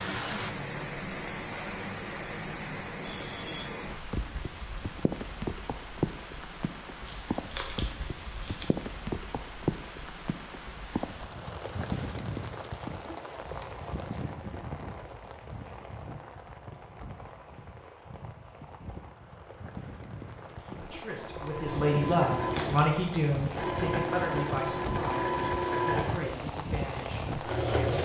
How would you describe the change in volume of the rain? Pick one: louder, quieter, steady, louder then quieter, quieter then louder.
quieter then louder.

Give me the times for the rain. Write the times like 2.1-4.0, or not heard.
0.0-27.9.